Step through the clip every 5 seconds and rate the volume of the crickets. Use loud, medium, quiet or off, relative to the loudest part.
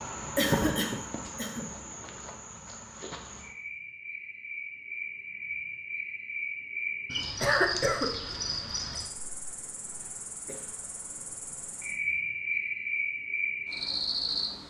medium, loud, loud.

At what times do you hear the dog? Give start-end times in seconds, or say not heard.
not heard.